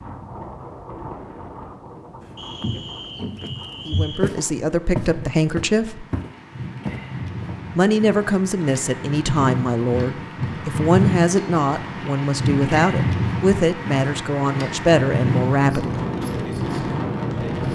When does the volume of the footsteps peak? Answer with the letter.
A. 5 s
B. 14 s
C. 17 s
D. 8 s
A.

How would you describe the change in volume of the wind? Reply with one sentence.
The volume of the wind goes up.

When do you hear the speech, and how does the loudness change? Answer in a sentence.
You can hear the speech briefly from 3.9 to 6.0 s; and from 7.8 to 16.0 s, at a steady volume.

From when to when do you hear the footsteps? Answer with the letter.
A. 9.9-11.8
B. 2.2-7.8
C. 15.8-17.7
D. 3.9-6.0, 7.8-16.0
B.